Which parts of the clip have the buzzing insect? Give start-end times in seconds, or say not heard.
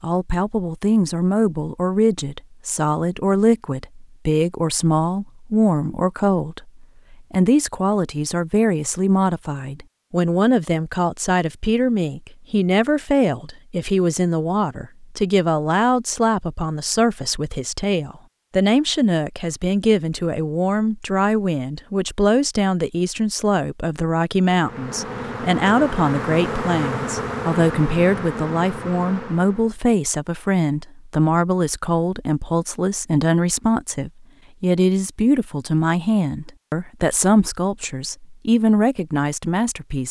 24.4-29.8.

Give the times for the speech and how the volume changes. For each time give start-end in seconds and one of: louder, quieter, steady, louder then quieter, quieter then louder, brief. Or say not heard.
0.0-40.0 steady.